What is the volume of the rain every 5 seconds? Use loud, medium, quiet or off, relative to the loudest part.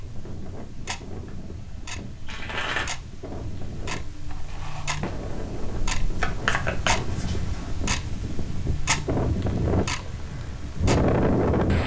quiet, medium, loud.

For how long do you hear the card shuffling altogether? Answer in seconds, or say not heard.
2 s.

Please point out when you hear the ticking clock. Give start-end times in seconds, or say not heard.
0.0-11.8.